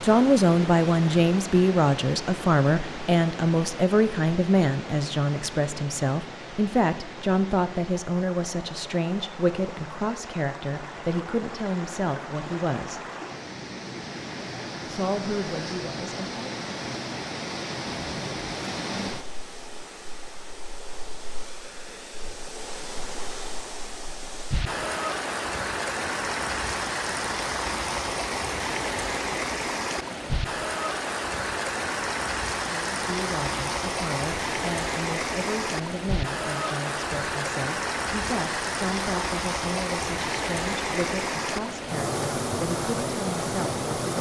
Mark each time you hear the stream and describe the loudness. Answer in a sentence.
You can hear the stream from 0.0 to 44.1 s, getting louder.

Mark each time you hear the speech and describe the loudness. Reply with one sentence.
You can hear the speech from 0.0 to 13.1 s, getting quieter; briefly from 14.8 to 16.6 s; and from 32.9 to 44.1 s, at a steady volume.